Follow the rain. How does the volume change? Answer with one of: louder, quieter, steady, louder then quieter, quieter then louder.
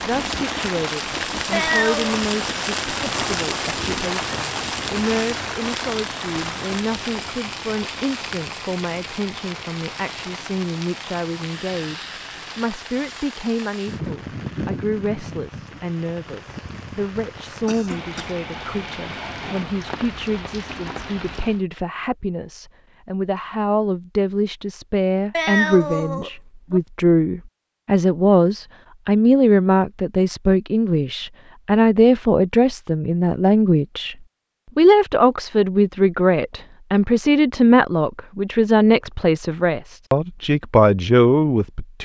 quieter.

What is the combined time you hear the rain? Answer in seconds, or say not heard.
22 s.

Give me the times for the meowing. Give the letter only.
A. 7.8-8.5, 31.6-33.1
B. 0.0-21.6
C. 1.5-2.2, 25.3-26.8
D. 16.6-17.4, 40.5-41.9
C.